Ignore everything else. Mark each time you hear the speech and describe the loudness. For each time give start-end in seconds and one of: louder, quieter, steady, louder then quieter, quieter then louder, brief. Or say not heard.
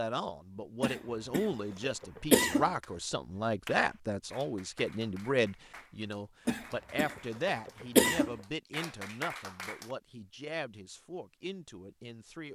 0.0-12.4 quieter.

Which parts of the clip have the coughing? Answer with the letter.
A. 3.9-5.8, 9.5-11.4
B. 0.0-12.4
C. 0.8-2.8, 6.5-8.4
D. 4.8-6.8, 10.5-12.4
C.